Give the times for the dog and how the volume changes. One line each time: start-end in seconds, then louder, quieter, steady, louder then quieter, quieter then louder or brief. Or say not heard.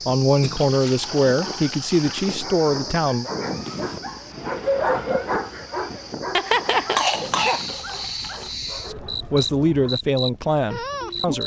0.8-9.9 louder then quieter.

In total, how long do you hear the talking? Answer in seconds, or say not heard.
6 s.